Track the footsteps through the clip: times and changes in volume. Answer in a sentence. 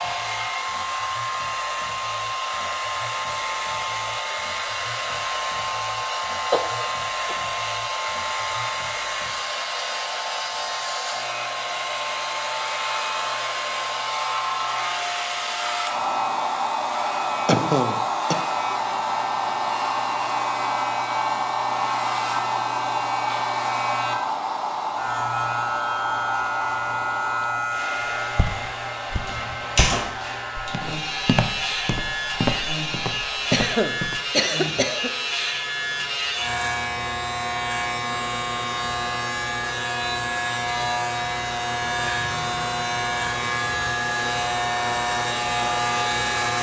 You can hear the footsteps from 28.4 to 34.2 s, getting louder.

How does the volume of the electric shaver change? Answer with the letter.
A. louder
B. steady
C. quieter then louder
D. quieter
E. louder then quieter
A.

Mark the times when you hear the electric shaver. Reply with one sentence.
You can hear the electric shaver from 0.0 to 46.5 s.